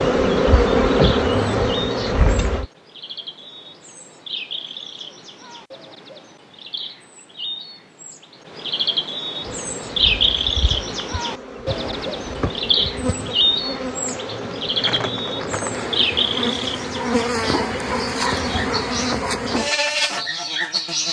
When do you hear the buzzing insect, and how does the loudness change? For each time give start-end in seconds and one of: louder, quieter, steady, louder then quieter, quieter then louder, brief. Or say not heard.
0.0-2.6 brief
9.4-21.0 louder.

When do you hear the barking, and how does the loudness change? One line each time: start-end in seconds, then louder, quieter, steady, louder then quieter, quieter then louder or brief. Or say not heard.
not heard.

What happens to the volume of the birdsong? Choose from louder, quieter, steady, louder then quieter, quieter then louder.
louder then quieter.